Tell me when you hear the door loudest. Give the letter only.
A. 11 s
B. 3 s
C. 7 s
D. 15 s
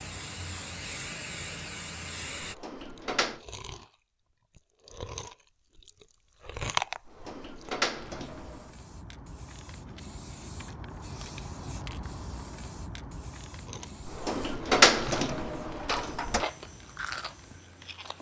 D.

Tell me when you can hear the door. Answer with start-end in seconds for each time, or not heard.
2.4-3.4, 7.0-8.7, 14.1-16.4.